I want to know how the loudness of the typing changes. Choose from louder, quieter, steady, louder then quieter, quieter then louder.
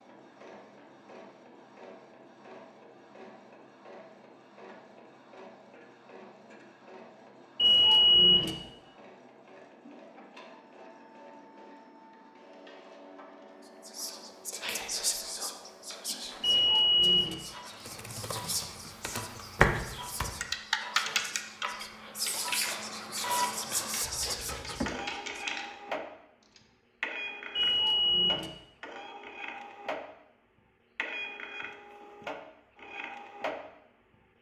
quieter.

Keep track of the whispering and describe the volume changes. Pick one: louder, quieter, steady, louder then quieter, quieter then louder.
quieter then louder.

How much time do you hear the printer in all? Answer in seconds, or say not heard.
34 s.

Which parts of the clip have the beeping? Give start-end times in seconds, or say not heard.
7.5-8.5, 16.4-17.4, 27.6-28.5.